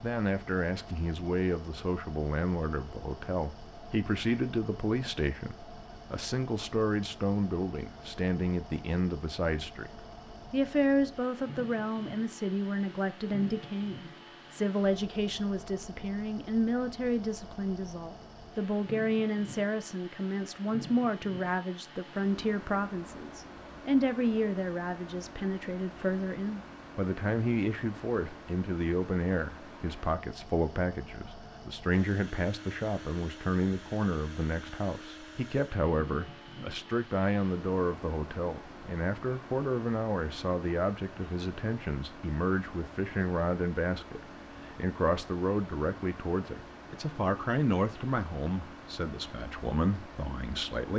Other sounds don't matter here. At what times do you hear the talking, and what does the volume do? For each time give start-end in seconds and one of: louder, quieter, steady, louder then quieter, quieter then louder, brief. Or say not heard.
0.0-50.9 steady.